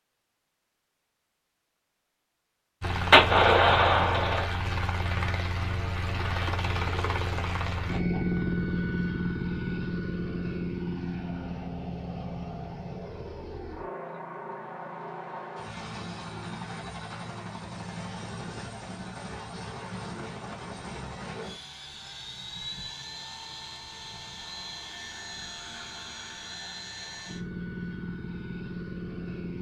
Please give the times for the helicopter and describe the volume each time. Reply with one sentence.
You can hear the helicopter from 2.8 to 29.5 s, getting quieter.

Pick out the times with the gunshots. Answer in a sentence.
The gunshots can be heard from 3.1 to 4.5 s.